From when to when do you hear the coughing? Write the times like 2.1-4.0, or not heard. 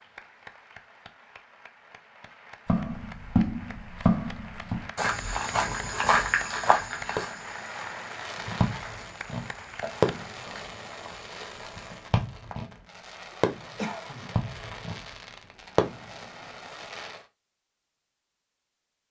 13.3-14.3.